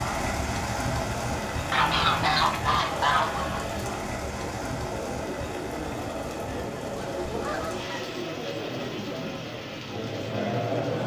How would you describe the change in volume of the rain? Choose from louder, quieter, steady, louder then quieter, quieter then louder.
quieter.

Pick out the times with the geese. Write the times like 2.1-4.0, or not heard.
1.7-3.6, 7.0-8.1.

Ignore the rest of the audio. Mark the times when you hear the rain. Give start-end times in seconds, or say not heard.
0.0-11.0.